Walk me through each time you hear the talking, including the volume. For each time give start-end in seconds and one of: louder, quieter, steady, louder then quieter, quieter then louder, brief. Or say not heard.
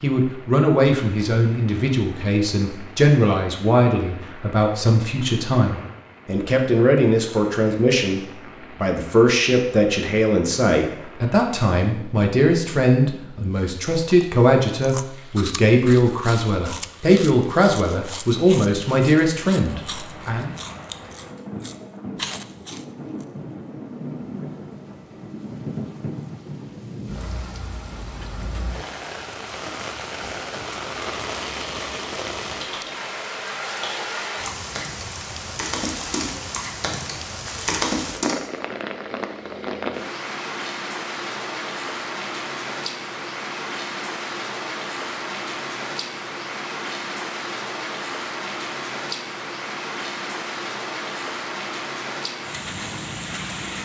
0.0-20.5 steady.